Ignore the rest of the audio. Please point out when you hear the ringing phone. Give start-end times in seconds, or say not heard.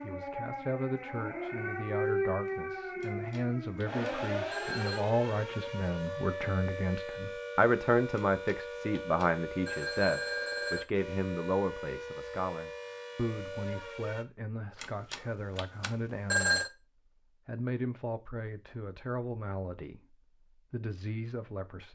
3.0-5.0, 8.2-10.8, 14.8-16.7.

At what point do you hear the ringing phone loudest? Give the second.
16 s.